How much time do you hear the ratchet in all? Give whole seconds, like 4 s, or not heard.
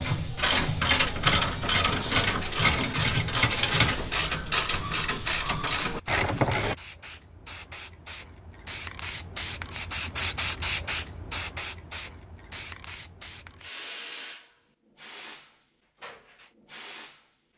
7 s.